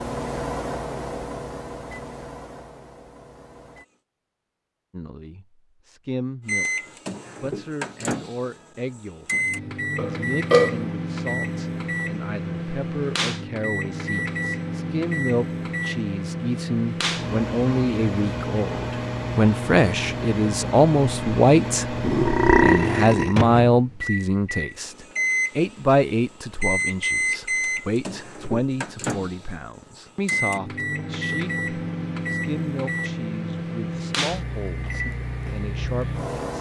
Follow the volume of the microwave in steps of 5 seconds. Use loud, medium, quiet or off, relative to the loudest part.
medium, loud, loud, loud, loud, loud, loud, loud.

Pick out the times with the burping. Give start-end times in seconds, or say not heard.
9.9-10.8, 22.0-23.4.